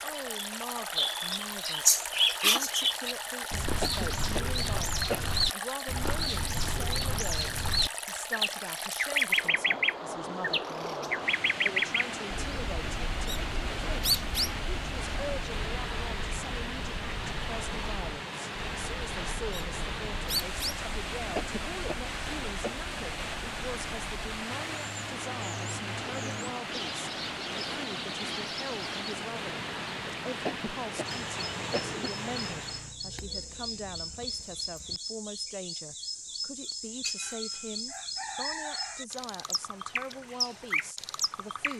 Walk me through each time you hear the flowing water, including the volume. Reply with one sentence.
You can hear the flowing water from 0.0 to 33.0 s, at a steady volume.